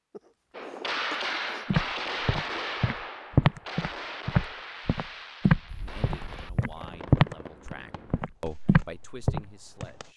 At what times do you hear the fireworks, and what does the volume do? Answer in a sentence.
You can hear the fireworks from 0.6 to 10.1 s, getting quieter.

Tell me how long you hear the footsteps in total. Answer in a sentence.
You can hear the footsteps for 8 seconds altogether.